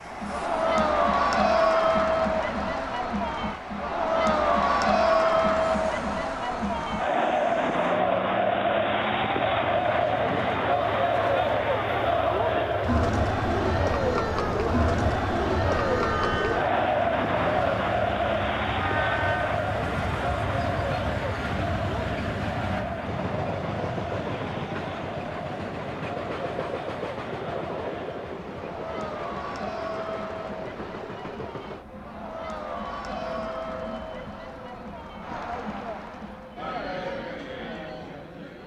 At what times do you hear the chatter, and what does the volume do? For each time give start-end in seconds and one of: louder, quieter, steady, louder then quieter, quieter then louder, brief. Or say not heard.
0.1-38.6 quieter.